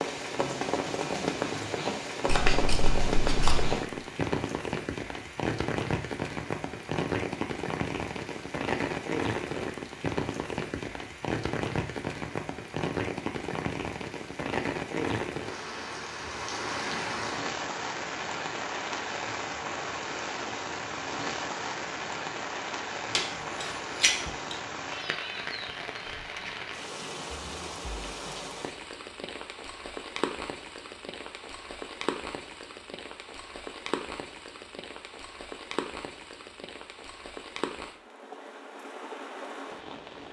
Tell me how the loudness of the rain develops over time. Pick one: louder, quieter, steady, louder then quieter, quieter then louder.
quieter.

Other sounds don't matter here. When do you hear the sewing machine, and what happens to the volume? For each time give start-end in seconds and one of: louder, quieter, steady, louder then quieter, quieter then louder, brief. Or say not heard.
not heard.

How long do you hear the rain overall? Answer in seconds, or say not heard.
40 s.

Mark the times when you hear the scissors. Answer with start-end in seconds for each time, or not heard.
2.2-3.8, 23.1-24.1.